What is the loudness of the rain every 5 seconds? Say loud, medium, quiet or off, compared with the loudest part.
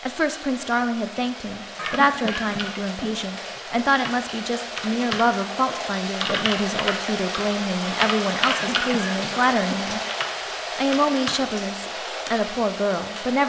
medium, loud, loud.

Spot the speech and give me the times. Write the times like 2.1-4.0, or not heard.
0.0-10.0, 10.8-13.4.